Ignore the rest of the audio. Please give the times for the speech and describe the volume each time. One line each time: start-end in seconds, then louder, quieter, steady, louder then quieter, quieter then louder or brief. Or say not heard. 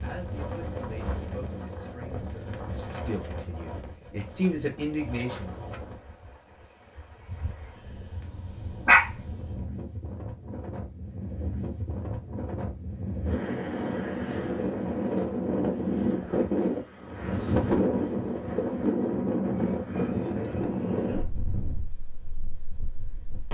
0.0-5.6 louder.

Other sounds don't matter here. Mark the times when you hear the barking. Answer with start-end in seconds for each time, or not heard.
7.8-9.7.